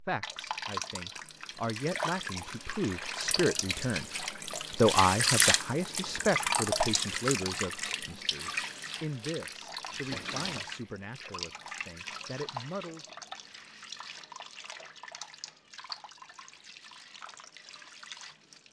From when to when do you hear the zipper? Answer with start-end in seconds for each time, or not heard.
not heard.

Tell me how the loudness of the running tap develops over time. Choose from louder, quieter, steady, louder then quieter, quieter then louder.
louder then quieter.